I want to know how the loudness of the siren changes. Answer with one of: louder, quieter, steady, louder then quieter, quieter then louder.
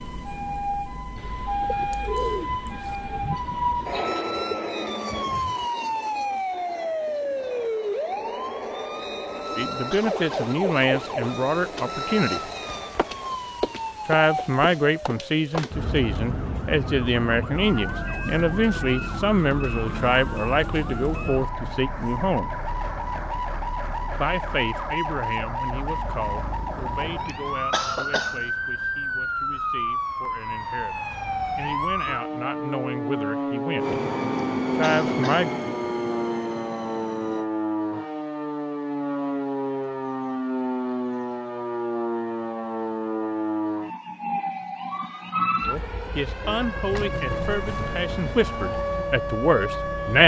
steady.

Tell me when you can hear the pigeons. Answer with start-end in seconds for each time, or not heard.
1.1-9.6.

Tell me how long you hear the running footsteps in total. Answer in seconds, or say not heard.
not heard.